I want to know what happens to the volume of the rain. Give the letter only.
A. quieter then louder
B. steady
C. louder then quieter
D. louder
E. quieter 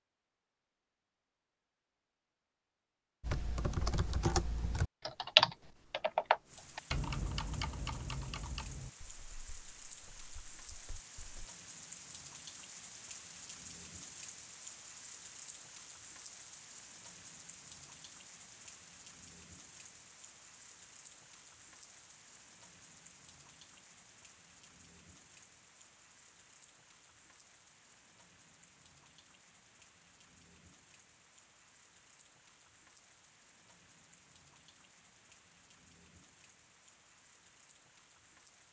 E.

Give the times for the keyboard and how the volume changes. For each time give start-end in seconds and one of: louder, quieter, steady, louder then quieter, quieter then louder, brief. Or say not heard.
3.2-11.4 louder then quieter.